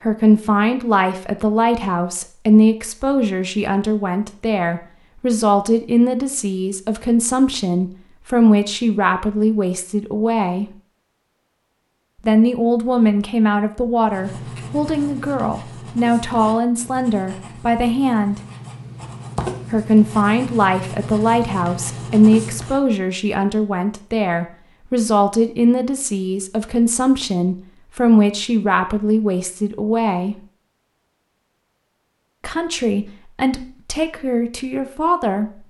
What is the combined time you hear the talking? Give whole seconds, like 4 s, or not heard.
31 s.